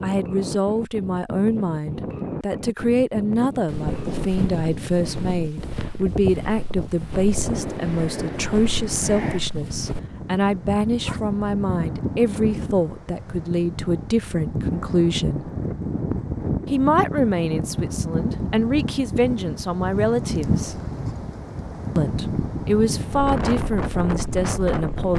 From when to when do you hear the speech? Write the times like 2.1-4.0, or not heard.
0.0-15.5, 16.7-20.8, 21.9-25.1.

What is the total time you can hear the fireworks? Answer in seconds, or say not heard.
not heard.